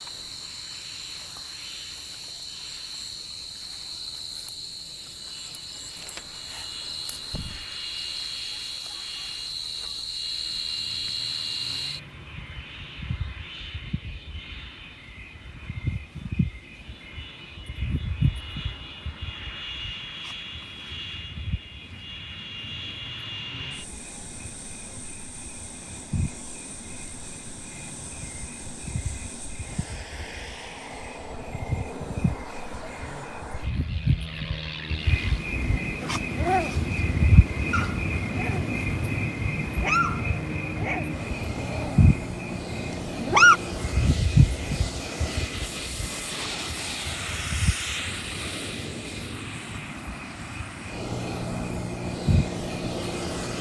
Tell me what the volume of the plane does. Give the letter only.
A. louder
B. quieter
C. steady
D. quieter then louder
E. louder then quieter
A.